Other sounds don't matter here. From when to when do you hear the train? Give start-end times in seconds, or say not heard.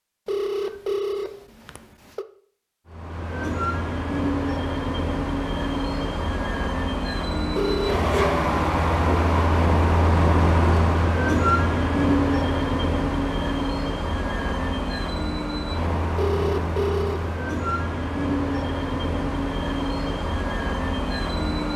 2.9-21.7.